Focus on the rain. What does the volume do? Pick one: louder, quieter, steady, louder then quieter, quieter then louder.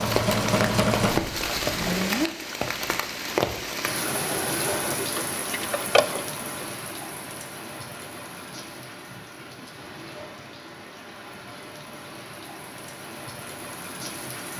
quieter.